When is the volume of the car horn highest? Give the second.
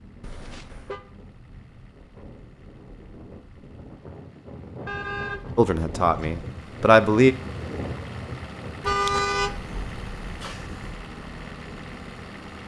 9 s.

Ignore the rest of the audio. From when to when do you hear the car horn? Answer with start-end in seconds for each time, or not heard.
0.2-1.0, 4.8-6.5, 8.8-11.0.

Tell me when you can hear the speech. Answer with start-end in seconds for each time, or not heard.
5.5-7.3.